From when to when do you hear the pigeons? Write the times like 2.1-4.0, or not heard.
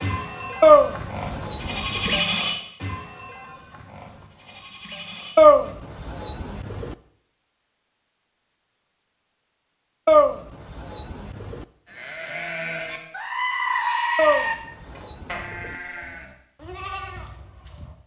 0.6-2.2, 5.3-7.0, 10.1-11.7, 14.2-15.8.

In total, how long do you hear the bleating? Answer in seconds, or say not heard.
12 s.